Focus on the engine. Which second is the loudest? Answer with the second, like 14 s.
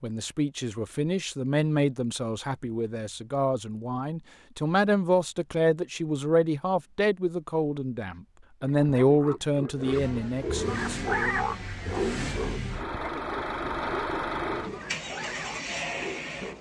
14 s.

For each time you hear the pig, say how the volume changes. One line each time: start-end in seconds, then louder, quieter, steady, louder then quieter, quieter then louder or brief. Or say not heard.
8.2-16.5 louder then quieter.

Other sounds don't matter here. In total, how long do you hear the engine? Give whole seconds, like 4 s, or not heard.
7 s.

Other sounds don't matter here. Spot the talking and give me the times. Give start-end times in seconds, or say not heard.
0.0-11.2.